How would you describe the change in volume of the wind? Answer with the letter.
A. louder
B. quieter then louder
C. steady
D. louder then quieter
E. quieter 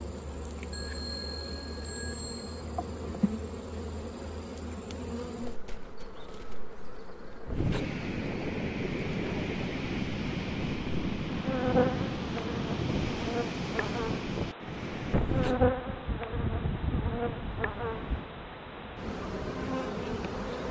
E.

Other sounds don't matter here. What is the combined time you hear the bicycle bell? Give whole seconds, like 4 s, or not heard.
2 s.